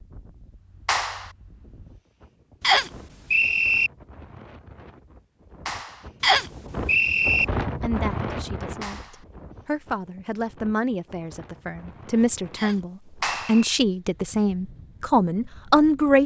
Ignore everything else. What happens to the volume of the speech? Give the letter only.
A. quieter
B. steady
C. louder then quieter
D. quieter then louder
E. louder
E.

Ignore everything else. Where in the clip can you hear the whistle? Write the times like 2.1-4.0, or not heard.
2.6-3.9, 6.2-7.5, 12.6-13.6.